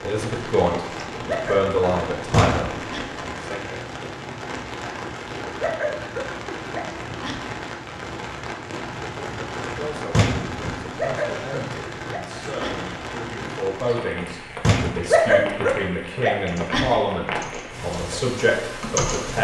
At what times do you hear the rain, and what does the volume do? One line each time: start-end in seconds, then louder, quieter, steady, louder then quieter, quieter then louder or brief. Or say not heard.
0.0-19.3 steady.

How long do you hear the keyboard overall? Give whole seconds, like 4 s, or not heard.
3 s.